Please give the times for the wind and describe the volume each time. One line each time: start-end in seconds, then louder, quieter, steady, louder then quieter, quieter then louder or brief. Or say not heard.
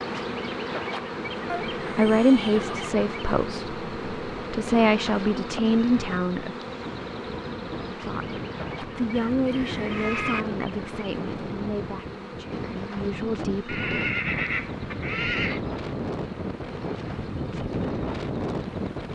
0.0-19.1 louder.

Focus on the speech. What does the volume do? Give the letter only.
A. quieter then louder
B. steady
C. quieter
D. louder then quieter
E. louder
C.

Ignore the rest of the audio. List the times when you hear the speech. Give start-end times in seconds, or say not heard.
1.9-6.5, 7.8-14.1.